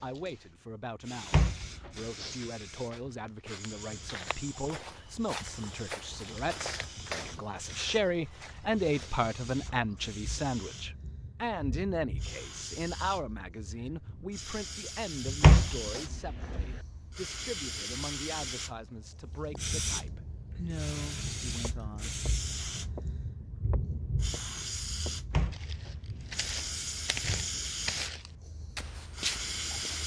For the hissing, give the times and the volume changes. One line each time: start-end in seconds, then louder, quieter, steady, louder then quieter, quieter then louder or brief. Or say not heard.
0.0-30.0 louder.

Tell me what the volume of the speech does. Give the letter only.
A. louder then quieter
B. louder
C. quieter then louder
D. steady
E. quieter
A.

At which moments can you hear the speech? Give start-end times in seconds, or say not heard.
0.0-22.3.